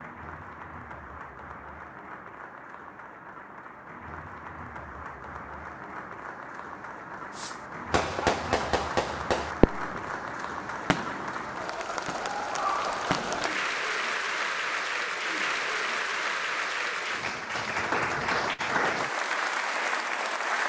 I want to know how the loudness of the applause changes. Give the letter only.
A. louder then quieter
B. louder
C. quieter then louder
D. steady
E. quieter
B.